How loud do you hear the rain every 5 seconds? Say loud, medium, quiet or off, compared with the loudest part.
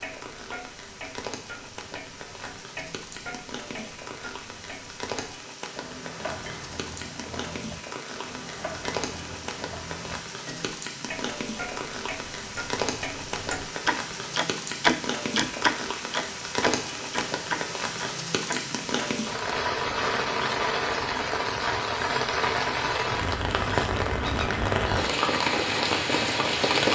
quiet, quiet, medium, medium, loud, loud.